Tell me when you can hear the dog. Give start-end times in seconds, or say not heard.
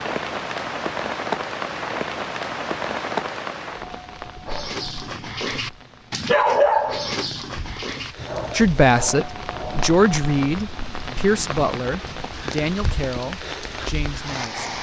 4.5-9.9.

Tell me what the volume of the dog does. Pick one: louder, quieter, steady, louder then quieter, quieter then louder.
louder then quieter.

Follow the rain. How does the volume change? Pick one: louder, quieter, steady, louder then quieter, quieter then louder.
quieter then louder.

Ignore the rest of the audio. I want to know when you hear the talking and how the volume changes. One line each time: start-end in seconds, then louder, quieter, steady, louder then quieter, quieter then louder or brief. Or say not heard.
8.6-14.7 quieter.